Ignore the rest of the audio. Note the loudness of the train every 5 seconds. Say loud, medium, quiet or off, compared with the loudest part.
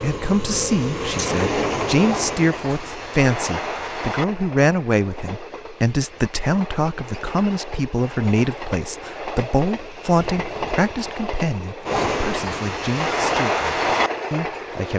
loud, medium, loud.